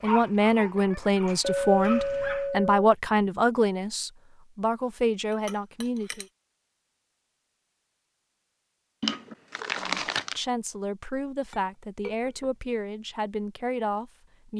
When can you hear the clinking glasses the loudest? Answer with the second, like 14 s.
2 s.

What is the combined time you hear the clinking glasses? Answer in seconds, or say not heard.
3 s.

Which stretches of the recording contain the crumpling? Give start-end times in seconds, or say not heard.
9.0-10.4.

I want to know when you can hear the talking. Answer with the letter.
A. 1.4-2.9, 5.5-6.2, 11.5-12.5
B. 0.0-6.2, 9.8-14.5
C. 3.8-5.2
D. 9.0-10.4
B.